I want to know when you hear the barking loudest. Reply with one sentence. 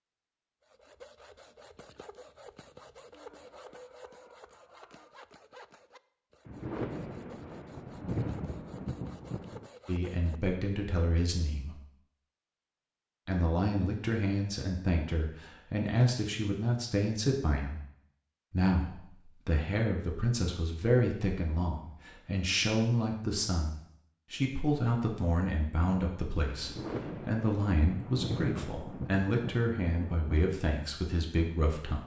The volume of the barking peaks at 4 seconds.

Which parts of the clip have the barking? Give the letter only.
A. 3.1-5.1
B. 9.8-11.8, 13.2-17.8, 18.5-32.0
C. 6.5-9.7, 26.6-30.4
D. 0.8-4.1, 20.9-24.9
A.